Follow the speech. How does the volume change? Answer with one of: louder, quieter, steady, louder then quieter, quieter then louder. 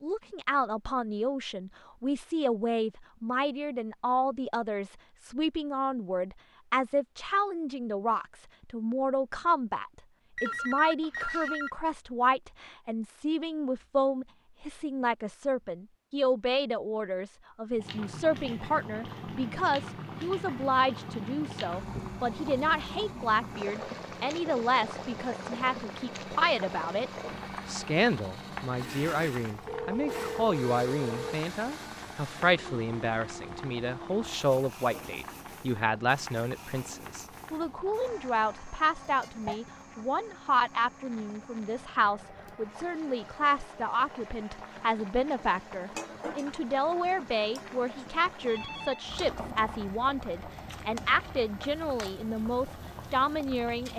steady.